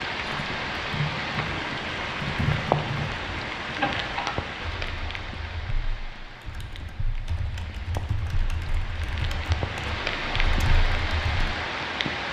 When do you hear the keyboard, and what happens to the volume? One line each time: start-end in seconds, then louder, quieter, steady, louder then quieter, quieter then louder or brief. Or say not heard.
0.2-11.6 quieter then louder.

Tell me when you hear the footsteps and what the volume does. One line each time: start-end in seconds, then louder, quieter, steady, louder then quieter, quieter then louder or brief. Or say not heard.
not heard.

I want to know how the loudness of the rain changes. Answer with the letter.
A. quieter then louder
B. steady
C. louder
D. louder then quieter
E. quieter
A.